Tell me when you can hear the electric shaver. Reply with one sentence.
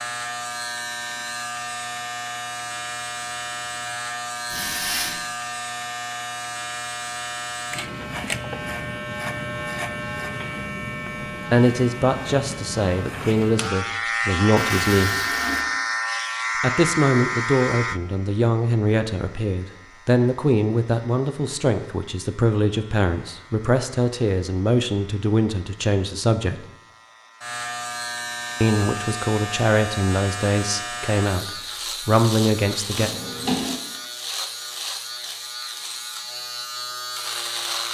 The electric shaver can be heard from 0.0 to 37.8 s.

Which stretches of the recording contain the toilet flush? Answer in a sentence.
The toilet flush can be heard from 4.5 to 5.2 s, from 14.6 to 15.7 s and from 33.0 to 33.8 s.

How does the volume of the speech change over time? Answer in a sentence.
The loudness of the speech stays about the same.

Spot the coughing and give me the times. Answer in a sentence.
You can't hear the coughing here.